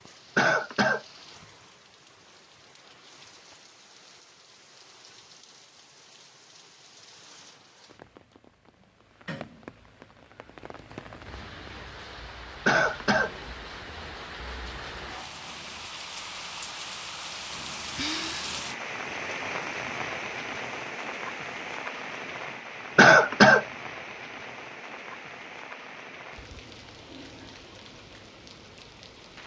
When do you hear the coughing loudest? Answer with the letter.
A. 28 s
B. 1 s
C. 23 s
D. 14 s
C.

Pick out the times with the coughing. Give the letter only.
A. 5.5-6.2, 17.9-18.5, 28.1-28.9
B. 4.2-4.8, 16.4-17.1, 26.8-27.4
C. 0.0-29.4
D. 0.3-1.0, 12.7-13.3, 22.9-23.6
D.